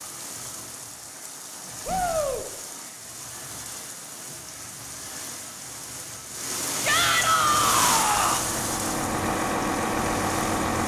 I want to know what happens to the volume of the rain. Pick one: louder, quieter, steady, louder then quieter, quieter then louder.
louder then quieter.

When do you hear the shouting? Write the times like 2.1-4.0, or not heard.
1.9-2.5, 6.8-8.4.